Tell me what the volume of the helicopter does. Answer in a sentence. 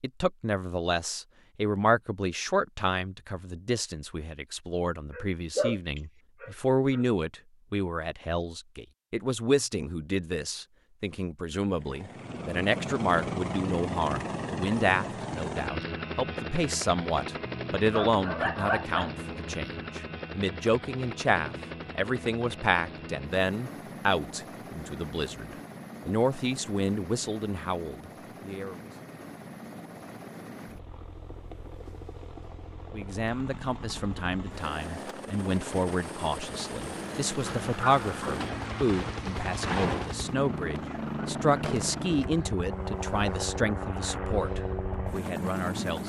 The loudness of the helicopter goes down, then up.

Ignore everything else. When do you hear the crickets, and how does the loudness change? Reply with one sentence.
You can't hear the crickets here.